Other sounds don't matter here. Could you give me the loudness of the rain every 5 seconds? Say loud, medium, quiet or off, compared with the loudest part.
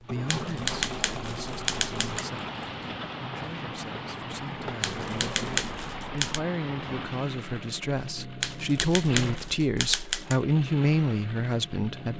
loud, loud, off.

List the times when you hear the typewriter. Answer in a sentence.
The typewriter can be heard from 0.2 to 2.2 s, from 4.8 to 6.4 s and from 8.4 to 10.4 s.